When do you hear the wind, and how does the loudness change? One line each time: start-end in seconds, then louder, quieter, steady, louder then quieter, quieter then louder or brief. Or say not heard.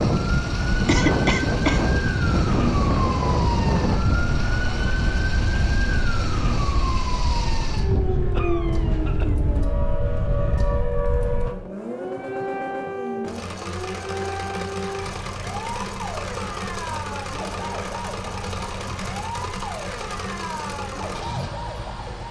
0.0-11.6 quieter.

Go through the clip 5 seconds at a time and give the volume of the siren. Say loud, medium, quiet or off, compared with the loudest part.
loud, loud, loud, medium, medium.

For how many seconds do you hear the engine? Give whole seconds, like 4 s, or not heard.
22 s.